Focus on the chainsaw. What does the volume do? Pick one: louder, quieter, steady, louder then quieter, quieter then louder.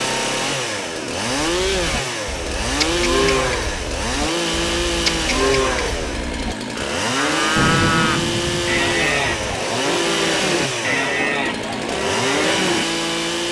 steady.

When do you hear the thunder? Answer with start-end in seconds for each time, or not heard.
7.5-9.5.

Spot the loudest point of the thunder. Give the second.
8 s.